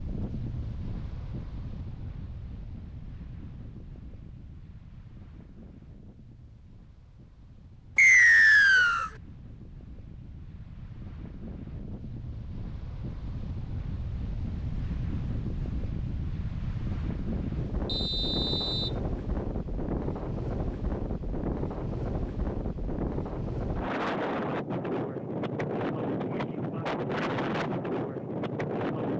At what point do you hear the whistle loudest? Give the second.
8 s.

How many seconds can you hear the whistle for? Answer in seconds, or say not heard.
2 s.